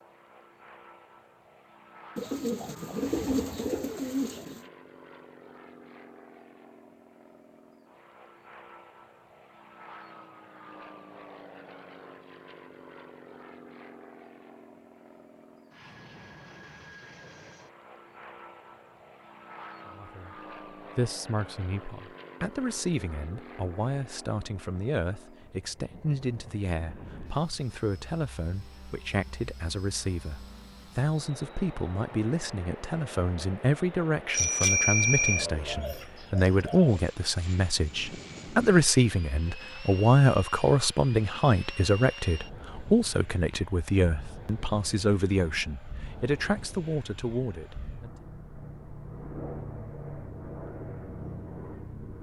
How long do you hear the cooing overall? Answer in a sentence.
You can hear the cooing for 4 seconds altogether.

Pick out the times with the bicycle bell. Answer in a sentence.
You can hear the bicycle bell from 34.3 to 35.5 s.